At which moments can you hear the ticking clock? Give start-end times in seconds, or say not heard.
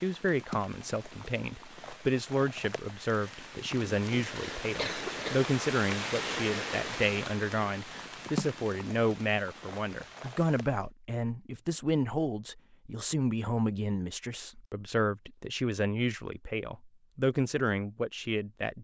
not heard.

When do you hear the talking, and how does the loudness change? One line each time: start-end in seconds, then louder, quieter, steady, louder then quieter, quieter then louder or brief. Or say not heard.
0.0-18.7 steady.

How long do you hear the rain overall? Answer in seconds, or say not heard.
11 s.